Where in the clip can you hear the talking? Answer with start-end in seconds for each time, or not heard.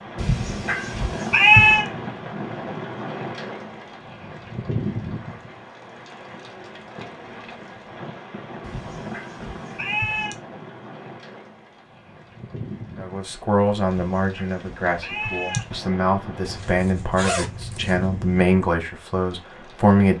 12.9-20.1.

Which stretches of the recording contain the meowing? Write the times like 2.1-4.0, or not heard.
0.1-1.9, 8.6-10.3, 13.8-15.7.